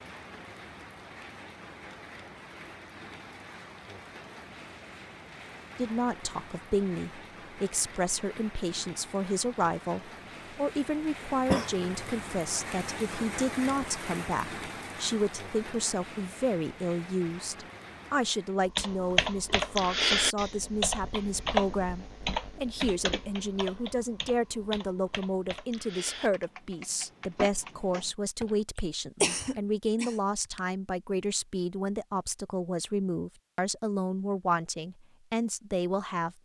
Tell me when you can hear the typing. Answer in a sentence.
The typing can be heard from 18.6 to 28.6 s.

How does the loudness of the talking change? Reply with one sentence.
The loudness of the talking stays about the same.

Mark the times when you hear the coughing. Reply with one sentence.
You can hear the coughing from 11.4 to 12.0 s and from 28.8 to 30.6 s.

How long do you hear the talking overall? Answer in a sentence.
You can hear the talking for 31 seconds altogether.